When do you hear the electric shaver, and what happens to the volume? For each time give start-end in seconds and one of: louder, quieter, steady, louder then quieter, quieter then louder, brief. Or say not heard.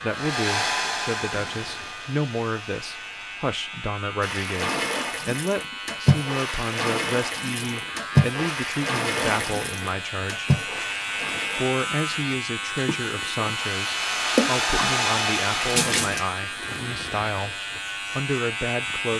0.0-19.1 louder.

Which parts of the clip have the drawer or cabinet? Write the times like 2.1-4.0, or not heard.
not heard.